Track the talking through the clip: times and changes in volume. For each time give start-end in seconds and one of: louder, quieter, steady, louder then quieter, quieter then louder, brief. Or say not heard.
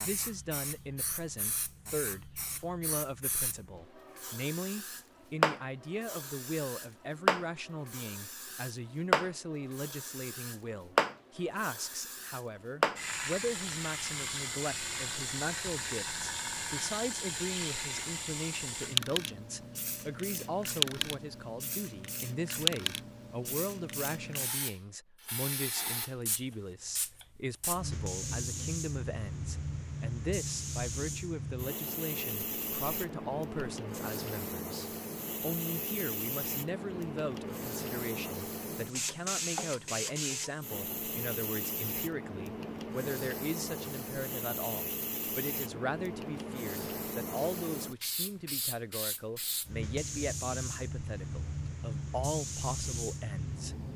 0.0-53.9 steady.